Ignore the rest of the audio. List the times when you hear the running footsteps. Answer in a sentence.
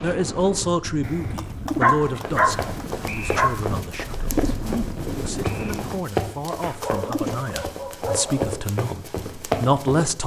The running footsteps can be heard from 2.2 to 10.2 s.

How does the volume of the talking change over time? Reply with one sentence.
The volume of the talking goes down, then up.